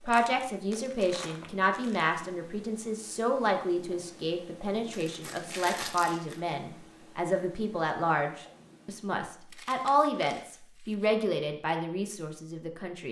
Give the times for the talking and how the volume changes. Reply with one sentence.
You can hear the talking from 0.0 to 13.0 s, at a steady volume.